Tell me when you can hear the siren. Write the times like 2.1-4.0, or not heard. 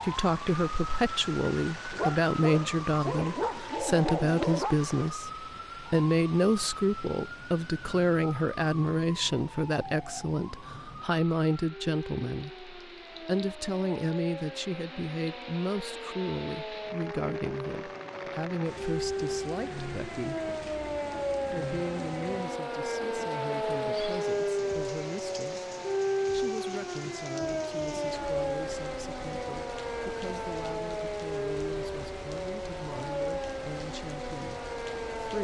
0.0-35.3.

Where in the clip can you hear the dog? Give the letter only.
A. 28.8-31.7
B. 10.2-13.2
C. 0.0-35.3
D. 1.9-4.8
D.